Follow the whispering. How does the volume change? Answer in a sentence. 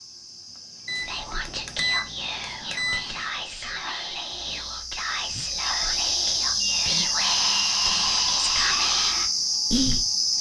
The loudness of the whispering goes up.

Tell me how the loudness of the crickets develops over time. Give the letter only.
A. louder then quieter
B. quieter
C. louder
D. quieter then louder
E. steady
C.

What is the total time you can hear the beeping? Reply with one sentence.
You can hear the beeping for 4 seconds altogether.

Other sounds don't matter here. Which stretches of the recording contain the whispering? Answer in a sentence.
You can hear the whispering from 0.9 to 10.1 s.